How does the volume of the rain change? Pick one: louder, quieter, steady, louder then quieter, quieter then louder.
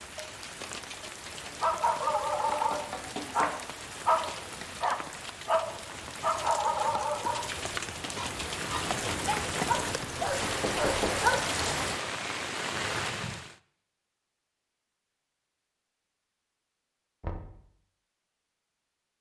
louder.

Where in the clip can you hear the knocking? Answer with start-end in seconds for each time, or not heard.
2.2-3.5, 10.4-11.2, 17.2-17.6.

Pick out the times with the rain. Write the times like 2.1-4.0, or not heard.
0.0-13.6.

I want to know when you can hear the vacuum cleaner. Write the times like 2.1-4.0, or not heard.
not heard.